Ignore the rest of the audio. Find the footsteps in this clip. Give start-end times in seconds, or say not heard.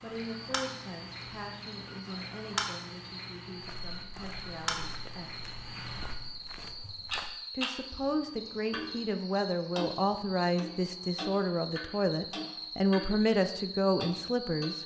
3.5-7.3.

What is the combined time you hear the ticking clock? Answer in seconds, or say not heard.
14 s.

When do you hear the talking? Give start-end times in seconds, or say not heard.
0.0-5.3, 7.5-14.8.